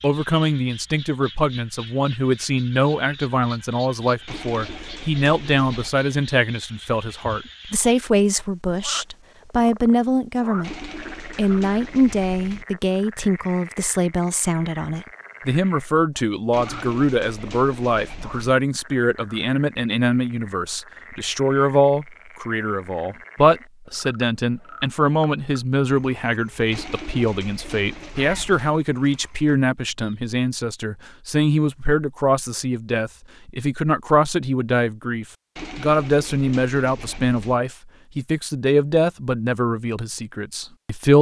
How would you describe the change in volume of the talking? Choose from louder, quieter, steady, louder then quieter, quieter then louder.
steady.